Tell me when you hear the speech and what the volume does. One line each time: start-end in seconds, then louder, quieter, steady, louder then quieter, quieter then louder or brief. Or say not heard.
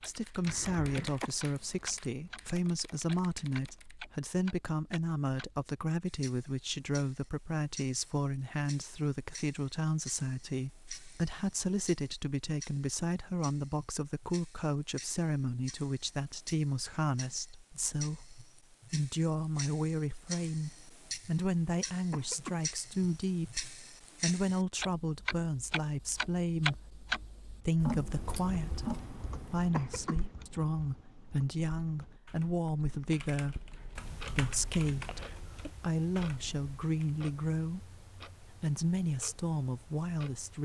0.1-40.6 steady.